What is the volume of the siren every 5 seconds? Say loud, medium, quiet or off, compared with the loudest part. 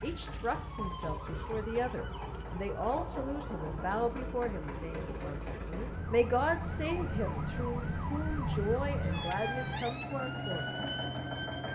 medium, loud, loud.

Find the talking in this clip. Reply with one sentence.
The talking can be heard from 0.0 to 10.7 s.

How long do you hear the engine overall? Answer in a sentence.
You can hear the engine for 12 seconds altogether.